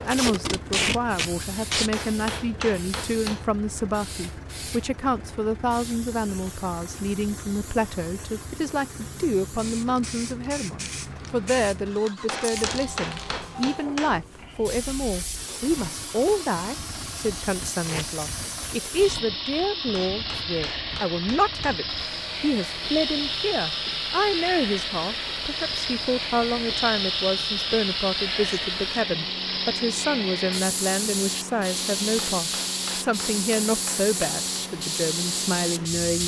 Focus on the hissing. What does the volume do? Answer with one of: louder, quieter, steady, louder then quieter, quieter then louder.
louder.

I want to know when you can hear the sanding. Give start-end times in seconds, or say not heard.
not heard.